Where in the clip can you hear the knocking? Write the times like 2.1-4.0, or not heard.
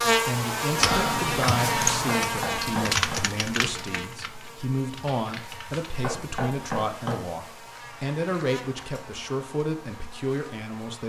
2.2-3.2, 6.0-7.2.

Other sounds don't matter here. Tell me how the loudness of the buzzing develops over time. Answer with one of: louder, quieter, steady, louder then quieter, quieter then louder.
quieter.